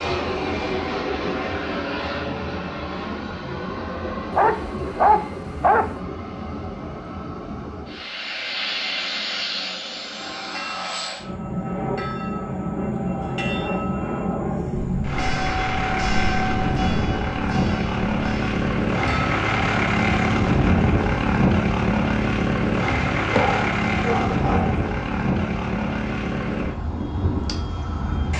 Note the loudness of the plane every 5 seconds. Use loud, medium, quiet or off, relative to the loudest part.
medium, medium, medium, loud, loud, medium.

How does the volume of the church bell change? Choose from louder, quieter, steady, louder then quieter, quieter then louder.
louder then quieter.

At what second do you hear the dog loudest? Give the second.
5 s.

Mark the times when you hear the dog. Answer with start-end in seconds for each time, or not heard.
4.3-5.9, 23.3-24.8.